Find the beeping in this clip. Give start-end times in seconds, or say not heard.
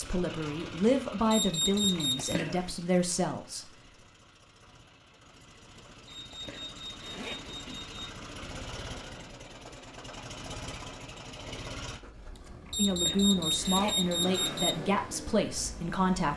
1.3-2.4, 6.0-8.0, 12.7-14.8.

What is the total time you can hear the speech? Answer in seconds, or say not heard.
7 s.